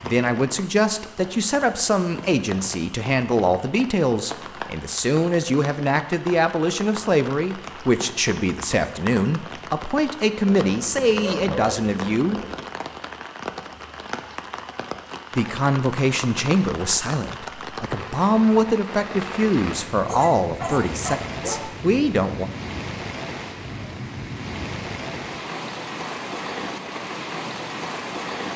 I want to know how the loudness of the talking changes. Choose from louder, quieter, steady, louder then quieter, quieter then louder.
steady.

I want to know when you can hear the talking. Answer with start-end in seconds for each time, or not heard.
0.0-12.4, 15.3-22.4.